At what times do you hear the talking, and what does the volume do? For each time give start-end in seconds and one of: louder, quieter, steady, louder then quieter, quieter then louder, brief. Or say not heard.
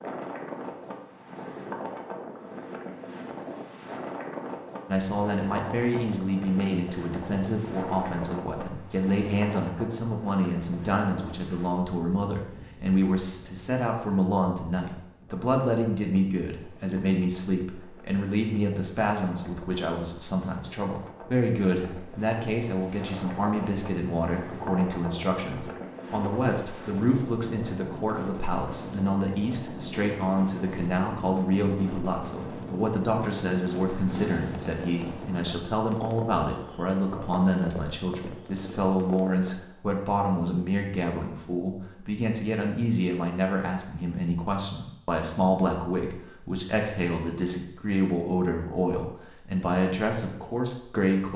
4.8-51.3 steady.